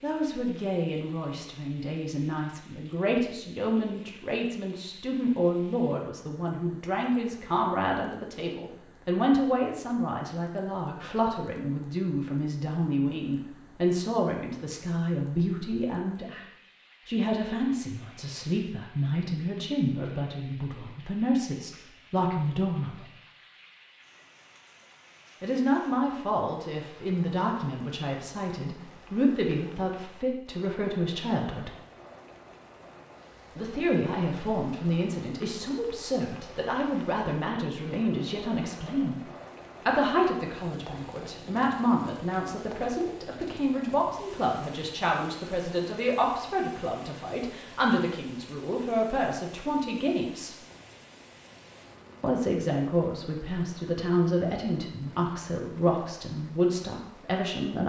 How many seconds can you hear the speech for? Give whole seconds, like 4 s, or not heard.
51 s.